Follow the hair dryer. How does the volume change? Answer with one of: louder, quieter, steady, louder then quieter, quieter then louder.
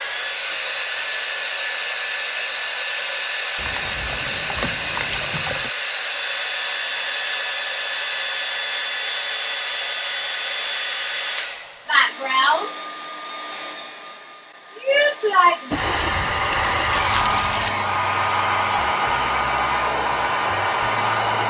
steady.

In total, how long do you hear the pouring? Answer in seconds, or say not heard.
4 s.